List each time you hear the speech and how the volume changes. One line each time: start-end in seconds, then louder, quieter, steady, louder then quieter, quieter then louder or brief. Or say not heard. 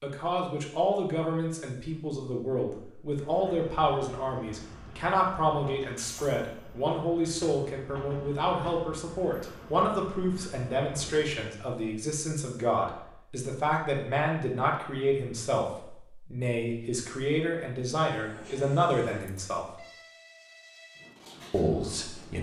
0.0-19.8 steady
21.5-22.3 brief.